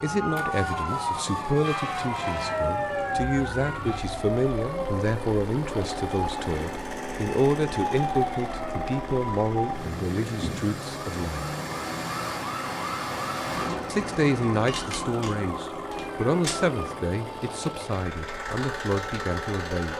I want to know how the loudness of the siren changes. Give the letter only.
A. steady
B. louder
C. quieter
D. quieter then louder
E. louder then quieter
C.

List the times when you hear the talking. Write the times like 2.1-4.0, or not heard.
0.0-11.4, 13.9-19.9.